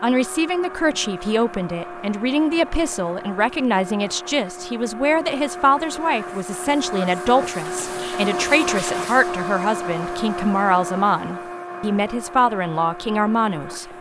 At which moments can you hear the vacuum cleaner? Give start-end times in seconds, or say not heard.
0.0-13.9.